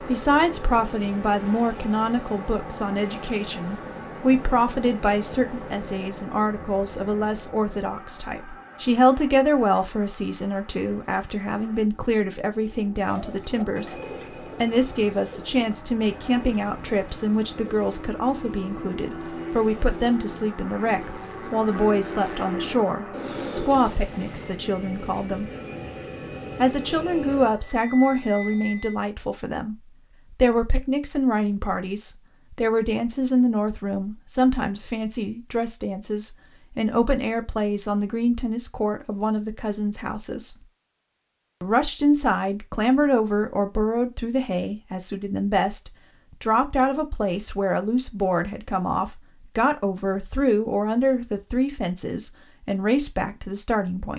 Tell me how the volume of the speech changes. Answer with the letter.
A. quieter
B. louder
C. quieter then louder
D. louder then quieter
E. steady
E.